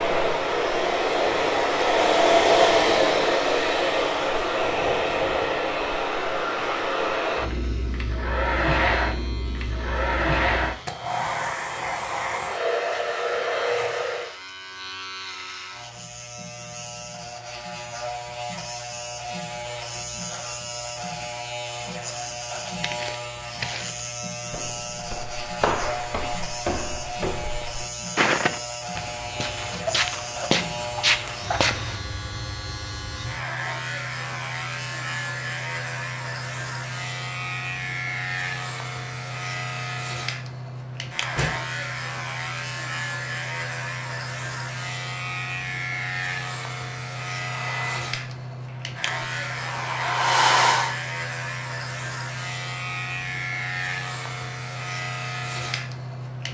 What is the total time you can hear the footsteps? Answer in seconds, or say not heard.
9 s.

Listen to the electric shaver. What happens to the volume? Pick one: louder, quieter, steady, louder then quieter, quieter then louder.
louder.